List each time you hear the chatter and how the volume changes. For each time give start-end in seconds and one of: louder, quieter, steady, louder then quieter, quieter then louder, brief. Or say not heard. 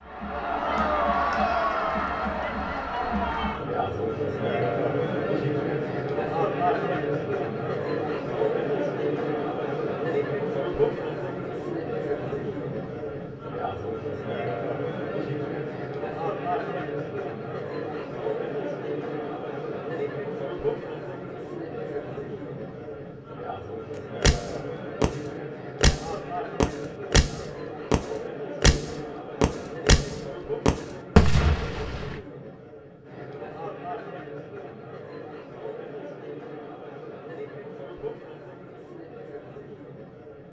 0.0-40.4 quieter.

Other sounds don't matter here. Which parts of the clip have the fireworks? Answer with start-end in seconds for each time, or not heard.
24.2-25.2, 25.8-32.1.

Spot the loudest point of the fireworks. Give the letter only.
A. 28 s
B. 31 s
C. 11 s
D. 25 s
B.